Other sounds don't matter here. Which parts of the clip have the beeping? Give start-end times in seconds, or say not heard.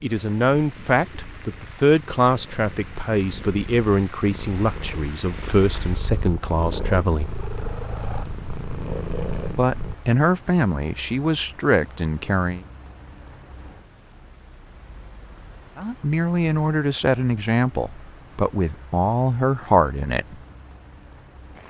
not heard.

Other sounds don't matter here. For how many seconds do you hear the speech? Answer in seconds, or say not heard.
15 s.